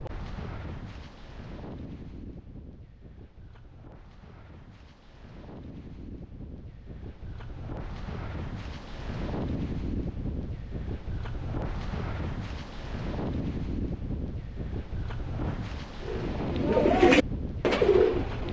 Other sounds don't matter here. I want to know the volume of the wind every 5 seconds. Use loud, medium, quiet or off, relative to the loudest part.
medium, loud, loud, loud.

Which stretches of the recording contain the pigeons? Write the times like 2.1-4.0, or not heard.
16.0-18.4.